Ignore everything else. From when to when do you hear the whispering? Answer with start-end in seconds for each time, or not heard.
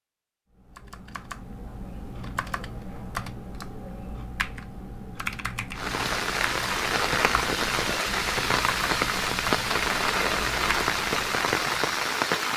not heard.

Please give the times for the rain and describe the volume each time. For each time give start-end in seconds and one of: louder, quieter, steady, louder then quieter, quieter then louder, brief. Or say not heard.
5.8-12.5 steady.